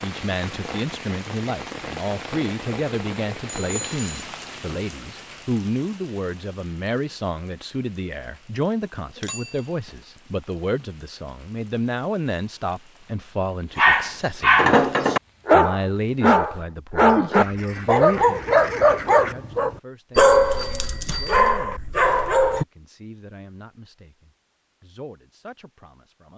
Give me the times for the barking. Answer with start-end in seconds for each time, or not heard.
13.8-22.6.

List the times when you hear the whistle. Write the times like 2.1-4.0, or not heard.
not heard.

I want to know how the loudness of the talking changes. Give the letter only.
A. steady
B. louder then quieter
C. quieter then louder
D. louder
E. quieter
E.